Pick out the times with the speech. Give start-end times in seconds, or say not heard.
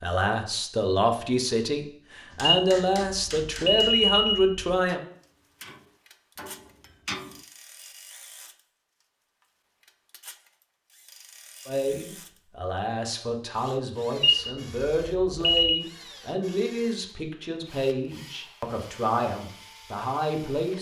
0.0-5.0, 11.7-20.7.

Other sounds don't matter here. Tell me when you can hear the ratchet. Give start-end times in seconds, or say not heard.
not heard.